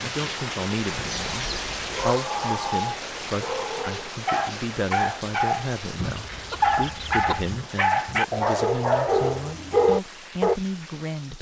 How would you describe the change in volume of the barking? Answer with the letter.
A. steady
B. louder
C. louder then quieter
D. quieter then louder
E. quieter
B.